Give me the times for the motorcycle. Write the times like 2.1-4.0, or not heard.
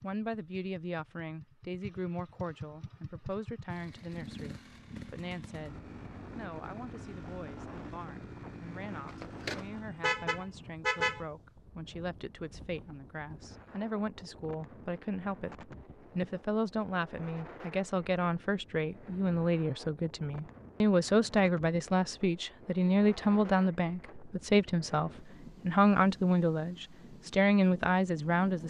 0.0-10.1.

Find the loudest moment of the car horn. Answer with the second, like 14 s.
11 s.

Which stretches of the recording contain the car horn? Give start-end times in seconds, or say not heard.
9.1-11.2.